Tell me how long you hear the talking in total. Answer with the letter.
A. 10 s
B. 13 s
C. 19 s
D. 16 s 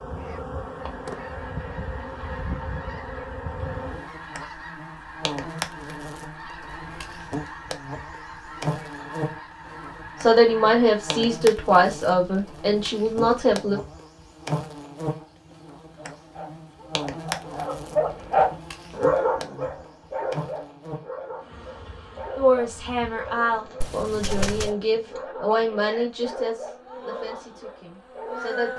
A.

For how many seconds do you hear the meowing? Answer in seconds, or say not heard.
2 s.